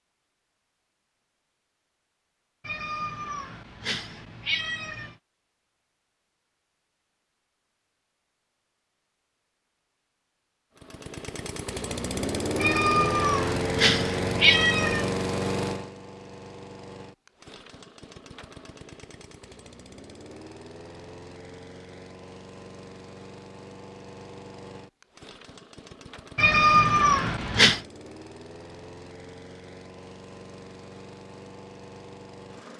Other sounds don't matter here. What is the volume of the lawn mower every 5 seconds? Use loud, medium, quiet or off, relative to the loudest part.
off, off, loud, medium, quiet, quiet, quiet.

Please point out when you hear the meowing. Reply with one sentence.
The meowing can be heard from 2.6 to 5.2 s, from 12.6 to 15.1 s and from 26.4 to 27.8 s.